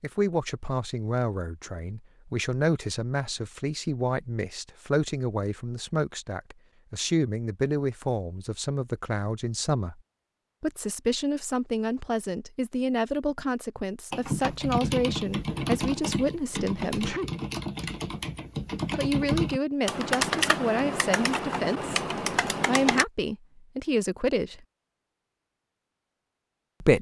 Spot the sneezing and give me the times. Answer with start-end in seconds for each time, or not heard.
16.9-17.4.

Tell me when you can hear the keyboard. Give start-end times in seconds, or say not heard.
14.1-23.1.